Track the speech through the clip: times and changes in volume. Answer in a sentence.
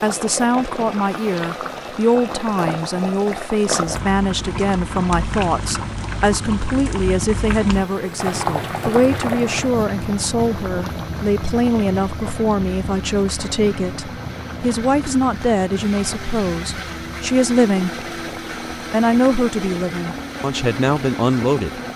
The speech can be heard from 0.0 to 18.1 s, at a steady volume; and briefly from 18.9 to 21.8 s.